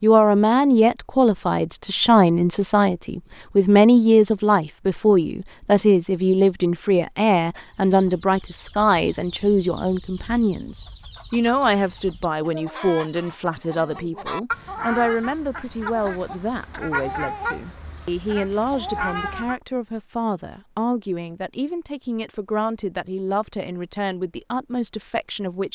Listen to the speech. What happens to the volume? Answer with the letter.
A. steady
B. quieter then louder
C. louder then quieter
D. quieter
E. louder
D.